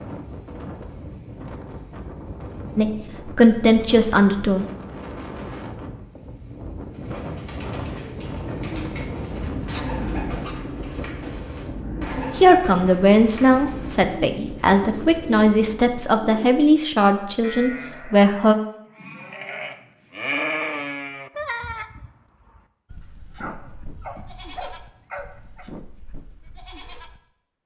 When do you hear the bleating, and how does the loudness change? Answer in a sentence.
You can hear the bleating from 17.4 to 27.2 s, getting louder then quieter.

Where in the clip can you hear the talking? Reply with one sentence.
You can hear the talking from 2.8 to 4.7 s and from 12.3 to 18.6 s.